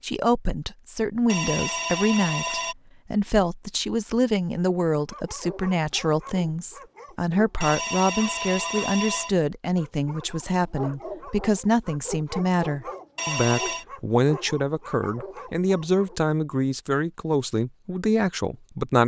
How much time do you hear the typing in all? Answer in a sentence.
The typing can't be heard in this clip.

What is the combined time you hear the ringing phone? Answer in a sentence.
The ringing phone can be heard for 4 seconds in total.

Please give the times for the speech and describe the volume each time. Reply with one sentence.
You can hear the speech from 0.0 to 19.0 s, at a steady volume.